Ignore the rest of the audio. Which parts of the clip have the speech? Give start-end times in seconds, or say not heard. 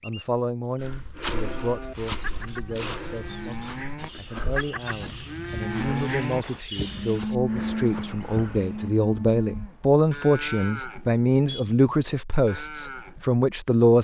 0.1-13.9.